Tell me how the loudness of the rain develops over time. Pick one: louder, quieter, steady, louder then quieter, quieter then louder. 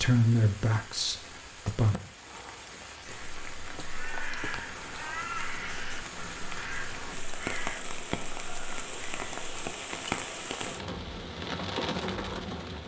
louder.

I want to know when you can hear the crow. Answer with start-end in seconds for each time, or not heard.
3.0-9.5.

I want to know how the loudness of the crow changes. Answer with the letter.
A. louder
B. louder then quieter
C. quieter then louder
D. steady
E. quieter
E.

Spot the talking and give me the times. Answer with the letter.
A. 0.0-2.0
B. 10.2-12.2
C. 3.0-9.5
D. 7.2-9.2
A.